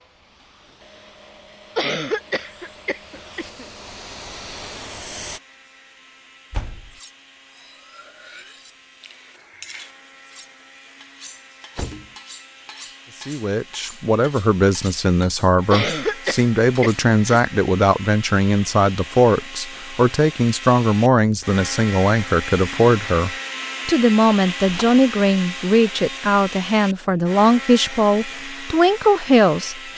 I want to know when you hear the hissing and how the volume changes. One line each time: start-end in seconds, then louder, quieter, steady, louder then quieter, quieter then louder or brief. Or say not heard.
0.0-5.4 louder.